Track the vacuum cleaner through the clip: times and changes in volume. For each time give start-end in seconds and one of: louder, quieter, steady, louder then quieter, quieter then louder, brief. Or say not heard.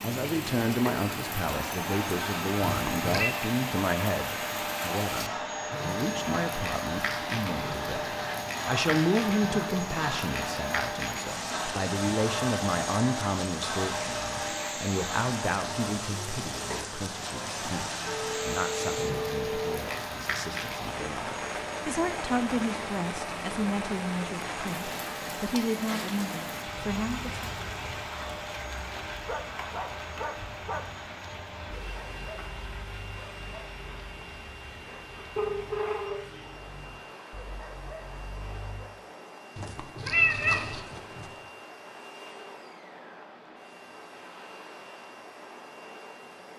0.0-46.5 quieter.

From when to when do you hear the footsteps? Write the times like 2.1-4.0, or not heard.
not heard.